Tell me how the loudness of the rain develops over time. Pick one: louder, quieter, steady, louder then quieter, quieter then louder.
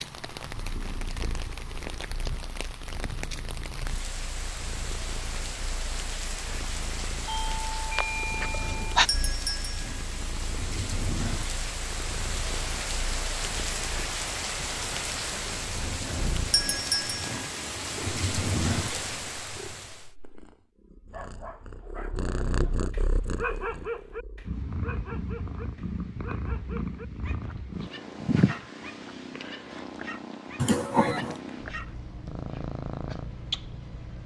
louder.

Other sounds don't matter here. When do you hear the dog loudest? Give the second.
24 s.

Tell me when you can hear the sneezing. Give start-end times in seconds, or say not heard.
not heard.